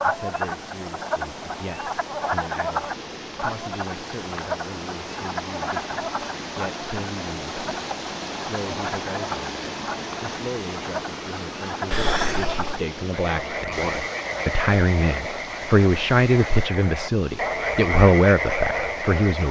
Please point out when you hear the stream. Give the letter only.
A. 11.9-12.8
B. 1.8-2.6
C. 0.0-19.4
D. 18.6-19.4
C.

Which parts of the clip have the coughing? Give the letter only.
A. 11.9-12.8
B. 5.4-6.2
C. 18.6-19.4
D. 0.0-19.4
A.